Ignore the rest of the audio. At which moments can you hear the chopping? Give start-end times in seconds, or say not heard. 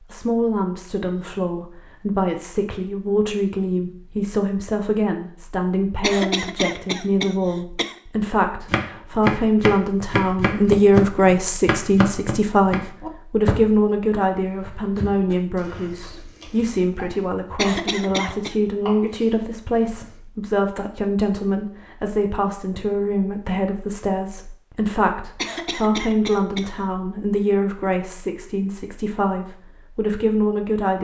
8.7-20.2.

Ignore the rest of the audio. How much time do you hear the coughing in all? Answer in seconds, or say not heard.
4 s.